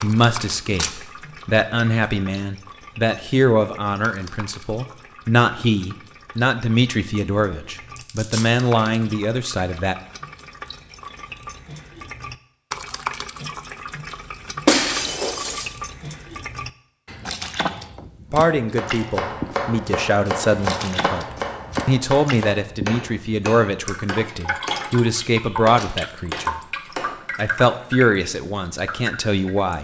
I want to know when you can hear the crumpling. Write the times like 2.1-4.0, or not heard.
8.0-8.5.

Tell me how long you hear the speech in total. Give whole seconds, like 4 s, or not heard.
21 s.